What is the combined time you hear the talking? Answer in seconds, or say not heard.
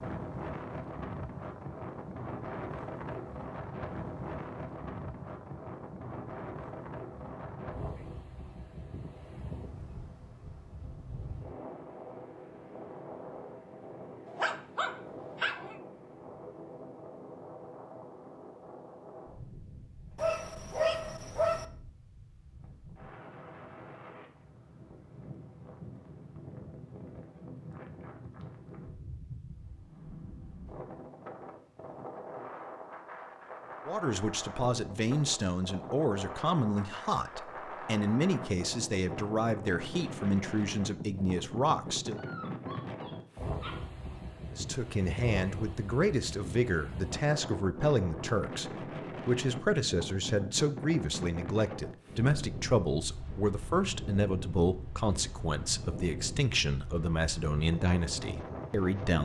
23 s.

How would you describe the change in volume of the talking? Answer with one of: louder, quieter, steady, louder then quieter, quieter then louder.
steady.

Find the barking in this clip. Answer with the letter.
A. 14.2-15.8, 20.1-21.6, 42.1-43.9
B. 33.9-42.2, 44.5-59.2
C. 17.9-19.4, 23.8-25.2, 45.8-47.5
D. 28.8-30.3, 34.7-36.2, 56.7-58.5
A.